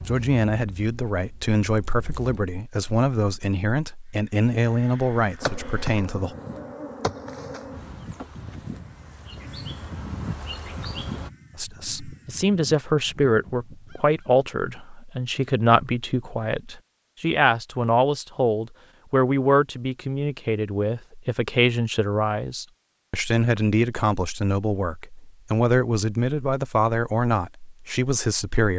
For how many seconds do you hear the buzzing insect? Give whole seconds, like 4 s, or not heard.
8 s.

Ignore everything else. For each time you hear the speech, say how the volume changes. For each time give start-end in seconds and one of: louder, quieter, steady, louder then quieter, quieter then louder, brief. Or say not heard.
0.1-6.3 steady
11.6-28.7 steady.